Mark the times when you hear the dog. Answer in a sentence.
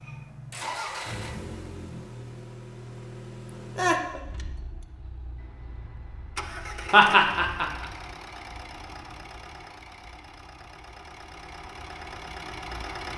You can't hear the dog here.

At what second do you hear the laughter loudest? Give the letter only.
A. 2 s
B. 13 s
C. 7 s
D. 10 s
C.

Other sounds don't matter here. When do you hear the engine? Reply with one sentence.
You can hear the engine from 0.0 to 13.1 s.